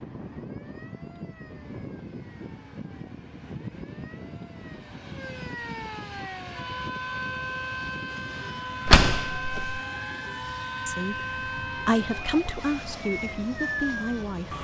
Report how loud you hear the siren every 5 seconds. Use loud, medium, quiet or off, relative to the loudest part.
quiet, loud, loud.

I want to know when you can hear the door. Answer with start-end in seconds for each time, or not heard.
8.8-9.8.